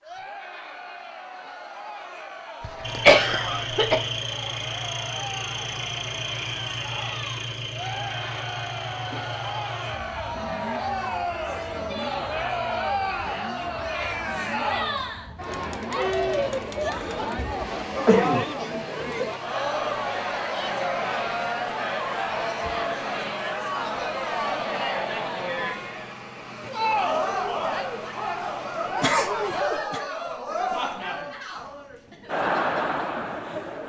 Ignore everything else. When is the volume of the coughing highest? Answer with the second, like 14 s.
3 s.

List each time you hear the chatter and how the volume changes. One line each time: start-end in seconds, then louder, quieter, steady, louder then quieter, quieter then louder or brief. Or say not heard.
0.0-33.8 louder.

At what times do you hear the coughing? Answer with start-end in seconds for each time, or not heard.
2.6-4.0, 16.9-18.9, 28.8-30.0.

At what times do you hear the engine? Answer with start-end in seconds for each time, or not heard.
2.8-29.6.